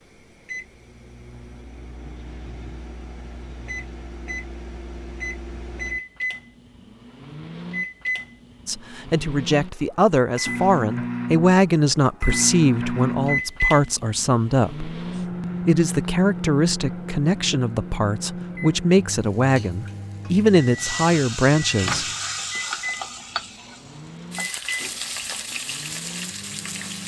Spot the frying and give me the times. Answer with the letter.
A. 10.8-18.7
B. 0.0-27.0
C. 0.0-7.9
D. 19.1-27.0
D.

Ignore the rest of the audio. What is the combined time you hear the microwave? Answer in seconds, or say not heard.
27 s.